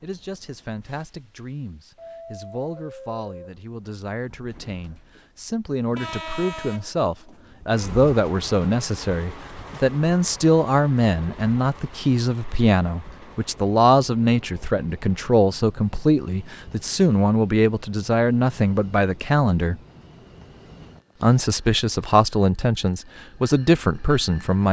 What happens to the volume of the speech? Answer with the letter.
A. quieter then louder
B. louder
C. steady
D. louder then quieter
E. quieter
B.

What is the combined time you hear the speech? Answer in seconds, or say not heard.
23 s.